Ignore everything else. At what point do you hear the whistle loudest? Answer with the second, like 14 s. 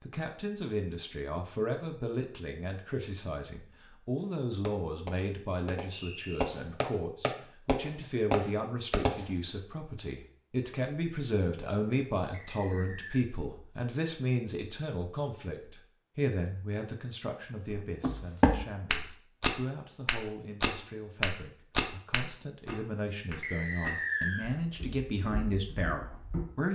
24 s.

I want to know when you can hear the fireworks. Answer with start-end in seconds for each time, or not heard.
4.2-9.2.